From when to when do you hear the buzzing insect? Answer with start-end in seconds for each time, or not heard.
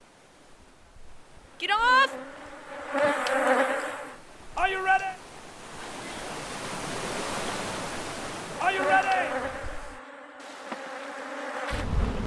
1.4-4.2, 8.6-12.2.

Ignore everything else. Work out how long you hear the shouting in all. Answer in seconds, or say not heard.
2 s.